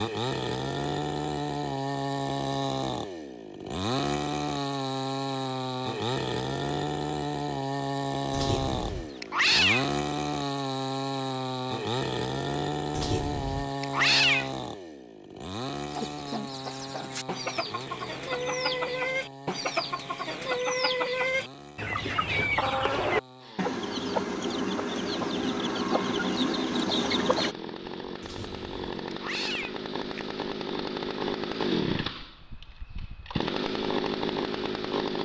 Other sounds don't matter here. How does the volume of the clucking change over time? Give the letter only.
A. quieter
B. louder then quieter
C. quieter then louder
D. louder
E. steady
D.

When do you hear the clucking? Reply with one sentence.
You can hear the clucking from 15.8 to 27.6 s.